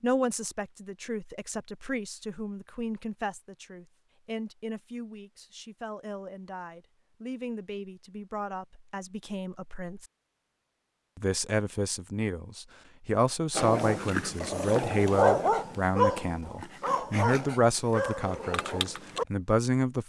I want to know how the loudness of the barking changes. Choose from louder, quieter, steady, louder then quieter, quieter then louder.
louder then quieter.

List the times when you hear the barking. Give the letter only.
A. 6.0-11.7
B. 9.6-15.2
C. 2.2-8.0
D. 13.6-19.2
D.